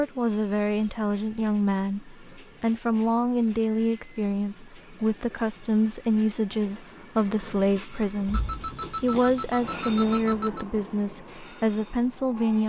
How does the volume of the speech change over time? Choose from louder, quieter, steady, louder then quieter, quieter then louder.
steady.